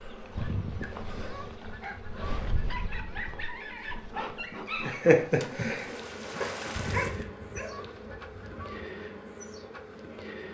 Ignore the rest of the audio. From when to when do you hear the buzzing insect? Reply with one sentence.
You can hear the buzzing insect from 0.0 to 10.4 s.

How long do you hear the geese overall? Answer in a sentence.
The geese can be heard for 5 seconds in total.